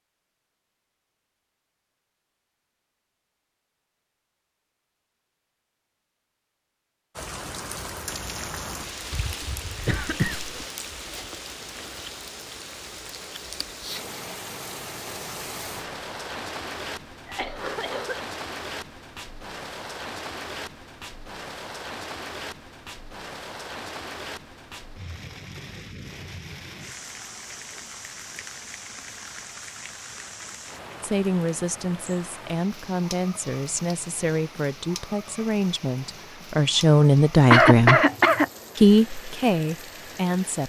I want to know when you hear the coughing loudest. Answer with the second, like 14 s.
38 s.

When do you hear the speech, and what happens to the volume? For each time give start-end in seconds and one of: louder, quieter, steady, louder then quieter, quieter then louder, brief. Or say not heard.
31.0-38.0 louder
38.8-40.6 brief.